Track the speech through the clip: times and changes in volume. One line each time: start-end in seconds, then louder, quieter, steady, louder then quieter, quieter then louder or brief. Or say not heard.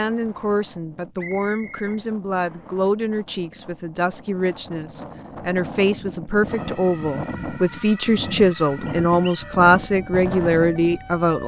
0.0-11.4 louder.